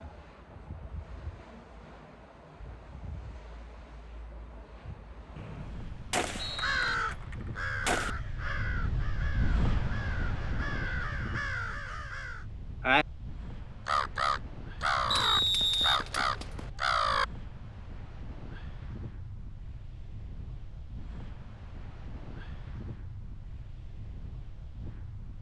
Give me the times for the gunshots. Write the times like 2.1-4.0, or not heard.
6.1-8.1, 15.2-16.7.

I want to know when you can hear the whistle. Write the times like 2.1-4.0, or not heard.
5.3-7.0, 15.1-16.0.